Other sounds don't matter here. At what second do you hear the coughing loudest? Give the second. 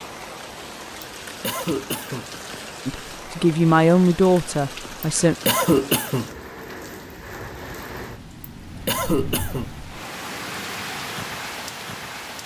6 s.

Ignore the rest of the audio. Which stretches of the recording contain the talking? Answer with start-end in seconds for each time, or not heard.
2.9-5.3.